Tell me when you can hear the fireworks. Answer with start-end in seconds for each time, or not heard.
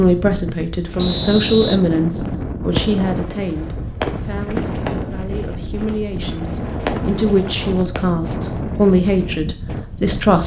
2.7-8.0.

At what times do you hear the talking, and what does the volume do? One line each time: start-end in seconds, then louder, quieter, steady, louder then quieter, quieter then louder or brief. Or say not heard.
0.0-10.4 quieter then louder.